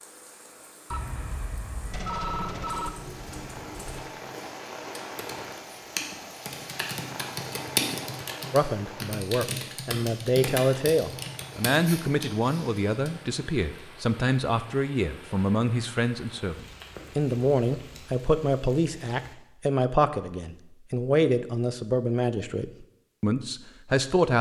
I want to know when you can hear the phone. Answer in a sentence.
The phone can be heard from 0.9 to 2.9 s.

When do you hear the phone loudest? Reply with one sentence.
The loudest moment of the phone is at 2 seconds.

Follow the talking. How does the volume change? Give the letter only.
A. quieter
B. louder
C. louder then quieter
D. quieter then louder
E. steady
E.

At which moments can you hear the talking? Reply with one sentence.
You can hear the talking from 8.5 to 24.3 s.